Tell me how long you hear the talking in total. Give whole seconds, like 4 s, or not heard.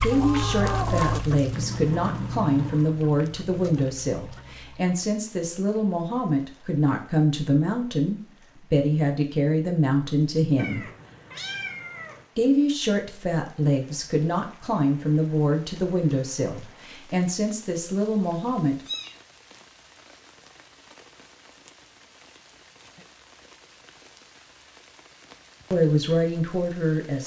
19 s.